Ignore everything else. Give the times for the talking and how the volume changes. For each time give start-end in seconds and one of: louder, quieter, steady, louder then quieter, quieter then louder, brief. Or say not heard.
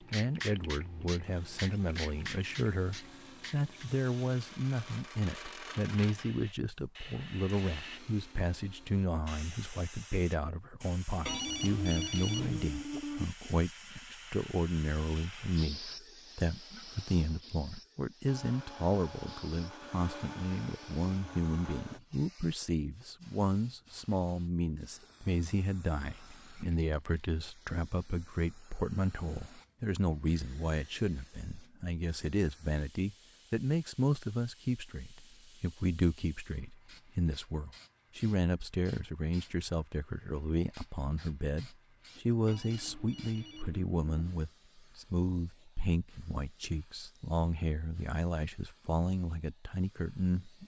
0.0-50.6 steady.